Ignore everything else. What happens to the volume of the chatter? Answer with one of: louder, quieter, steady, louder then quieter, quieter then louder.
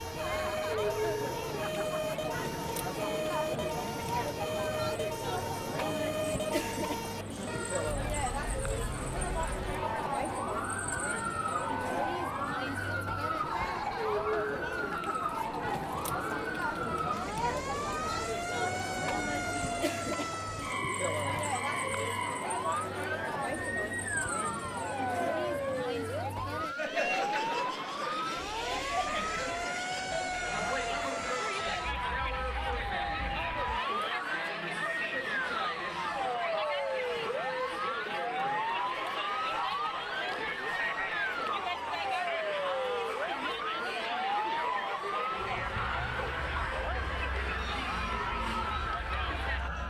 steady.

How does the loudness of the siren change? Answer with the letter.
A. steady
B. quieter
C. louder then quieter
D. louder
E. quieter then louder
A.